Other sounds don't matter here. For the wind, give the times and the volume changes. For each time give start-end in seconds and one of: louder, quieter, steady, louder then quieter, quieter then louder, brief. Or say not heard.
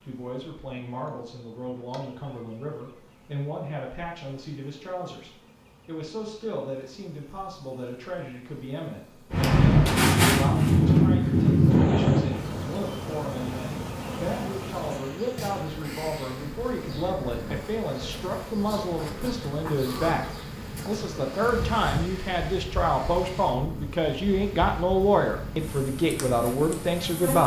9.3-27.3 quieter.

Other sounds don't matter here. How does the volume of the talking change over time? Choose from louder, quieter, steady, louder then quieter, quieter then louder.
louder.